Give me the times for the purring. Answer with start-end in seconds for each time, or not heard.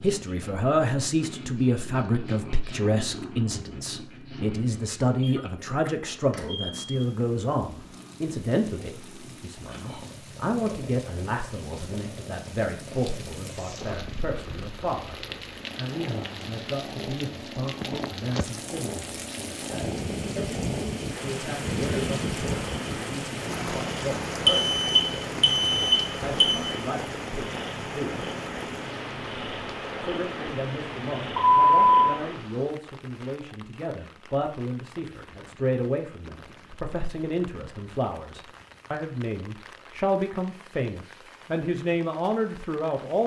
0.0-32.6.